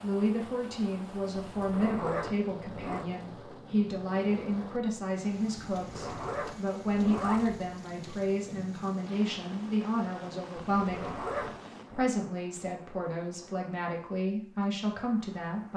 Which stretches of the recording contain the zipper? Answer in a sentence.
The zipper can be heard from 1.4 to 3.0 s, from 5.8 to 7.6 s and from 10.6 to 12.1 s.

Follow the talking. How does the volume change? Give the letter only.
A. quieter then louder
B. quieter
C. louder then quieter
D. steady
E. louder
D.